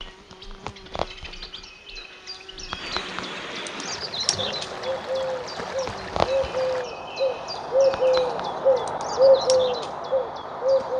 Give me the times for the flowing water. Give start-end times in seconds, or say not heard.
0.0-6.8.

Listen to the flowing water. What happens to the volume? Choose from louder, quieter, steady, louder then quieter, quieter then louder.
louder.